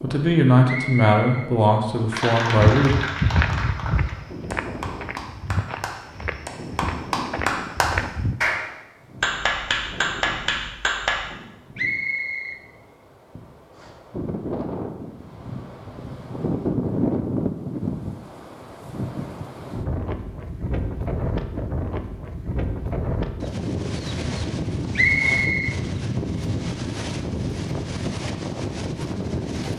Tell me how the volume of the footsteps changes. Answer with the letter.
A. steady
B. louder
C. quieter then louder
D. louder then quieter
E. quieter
E.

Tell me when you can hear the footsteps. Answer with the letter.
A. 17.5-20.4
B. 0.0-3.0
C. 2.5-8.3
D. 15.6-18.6
C.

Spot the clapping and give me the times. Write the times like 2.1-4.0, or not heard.
2.1-11.2.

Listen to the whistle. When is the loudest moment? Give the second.
25 s.